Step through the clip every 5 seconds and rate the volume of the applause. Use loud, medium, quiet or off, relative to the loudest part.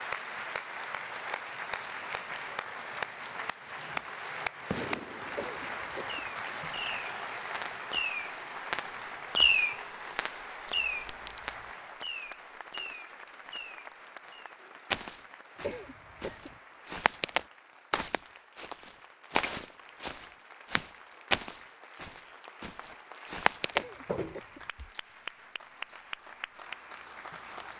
loud, loud, medium, quiet, quiet, medium.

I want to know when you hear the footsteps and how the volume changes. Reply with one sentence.
The footsteps can be heard from 14.9 to 24.9 s, getting louder.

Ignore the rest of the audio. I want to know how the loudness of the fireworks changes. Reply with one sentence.
The volume of the fireworks goes up, then down.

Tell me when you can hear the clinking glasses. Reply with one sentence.
You can hear the clinking glasses from 10.7 to 11.7 s.